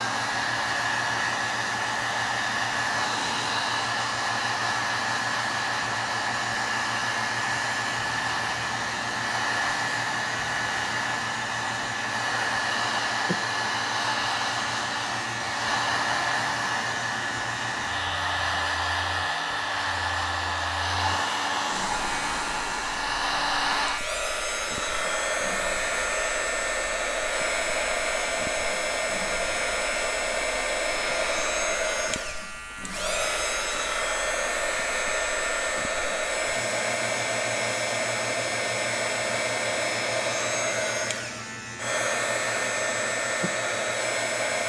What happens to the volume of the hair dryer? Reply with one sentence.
The loudness of the hair dryer stays about the same.